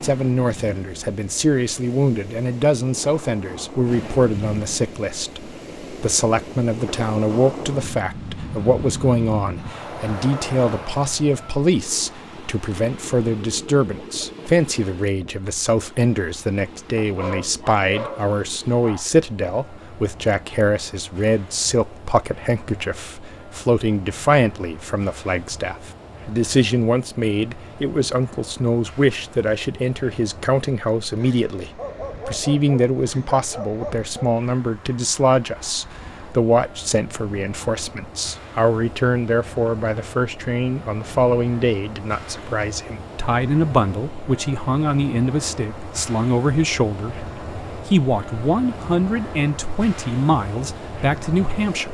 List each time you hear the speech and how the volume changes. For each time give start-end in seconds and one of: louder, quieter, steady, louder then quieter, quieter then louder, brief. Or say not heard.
0.0-51.8 steady.